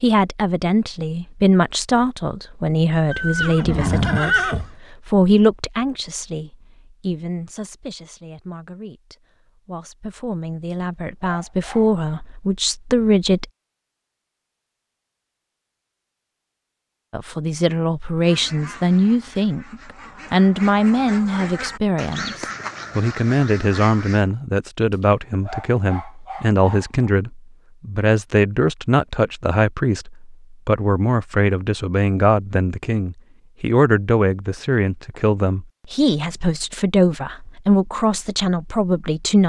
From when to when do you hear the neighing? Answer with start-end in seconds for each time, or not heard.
3.1-4.7.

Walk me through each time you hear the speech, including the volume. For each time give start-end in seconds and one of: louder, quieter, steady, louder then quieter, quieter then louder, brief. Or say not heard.
0.0-13.4 quieter then louder
17.1-39.4 steady.